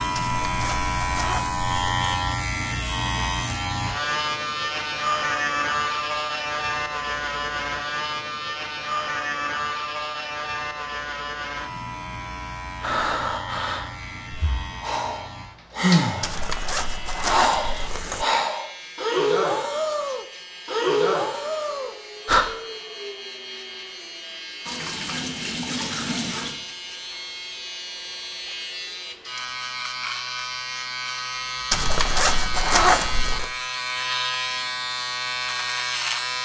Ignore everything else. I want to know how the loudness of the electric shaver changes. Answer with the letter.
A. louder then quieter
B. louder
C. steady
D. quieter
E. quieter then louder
E.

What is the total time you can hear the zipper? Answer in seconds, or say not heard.
6 s.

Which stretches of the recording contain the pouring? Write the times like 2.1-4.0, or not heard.
24.6-26.6.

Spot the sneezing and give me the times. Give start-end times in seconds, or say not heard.
not heard.